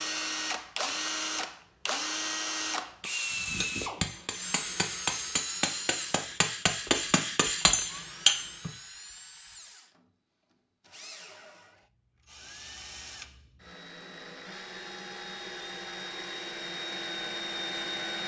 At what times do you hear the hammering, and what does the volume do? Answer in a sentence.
You can hear the hammering from 3.3 to 8.7 s, getting louder.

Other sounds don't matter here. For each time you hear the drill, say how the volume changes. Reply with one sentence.
You can hear the drill from 0.0 to 18.2 s, getting quieter then louder.